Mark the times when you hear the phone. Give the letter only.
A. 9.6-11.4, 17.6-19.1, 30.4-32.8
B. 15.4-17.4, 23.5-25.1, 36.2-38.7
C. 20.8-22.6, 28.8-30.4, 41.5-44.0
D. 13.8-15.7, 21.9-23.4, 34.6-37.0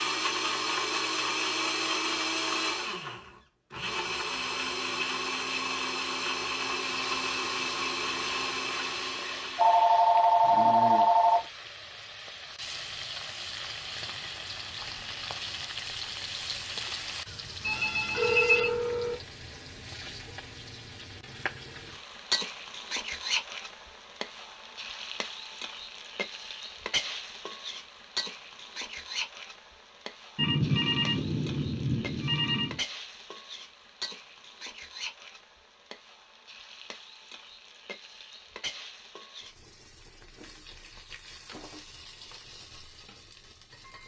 A.